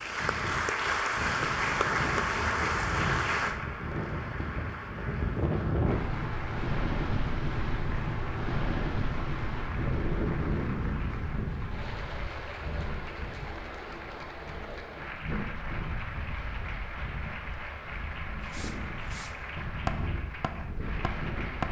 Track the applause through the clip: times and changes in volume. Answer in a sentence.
The applause can be heard from 0.0 to 21.6 s, getting quieter.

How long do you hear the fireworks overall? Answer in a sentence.
You can hear the fireworks for 3 seconds altogether.